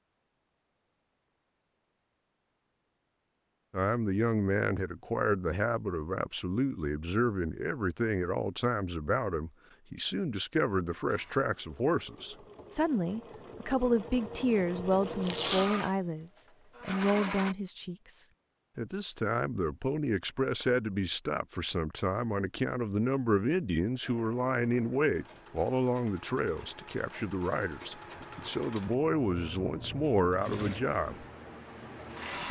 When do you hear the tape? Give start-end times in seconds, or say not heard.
15.2-15.9.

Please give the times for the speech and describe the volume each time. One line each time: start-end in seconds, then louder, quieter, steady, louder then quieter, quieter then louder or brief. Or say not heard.
3.7-31.2 steady.